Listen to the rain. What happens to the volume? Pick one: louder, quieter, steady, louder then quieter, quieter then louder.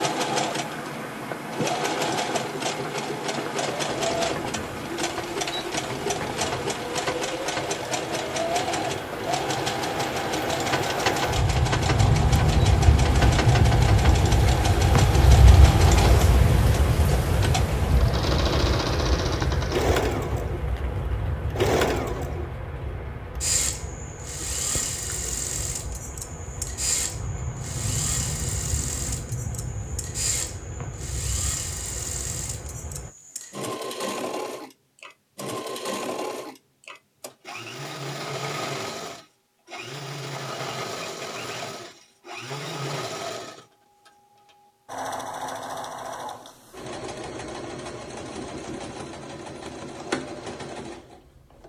louder then quieter.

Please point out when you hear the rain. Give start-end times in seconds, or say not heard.
0.0-33.1.